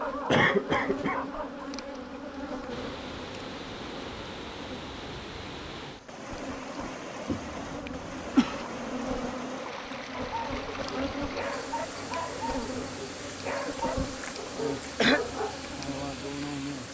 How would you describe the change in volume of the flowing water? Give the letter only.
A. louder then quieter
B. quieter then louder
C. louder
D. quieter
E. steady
E.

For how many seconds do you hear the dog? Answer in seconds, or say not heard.
7 s.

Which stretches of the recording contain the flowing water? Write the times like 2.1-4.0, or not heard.
2.6-16.9.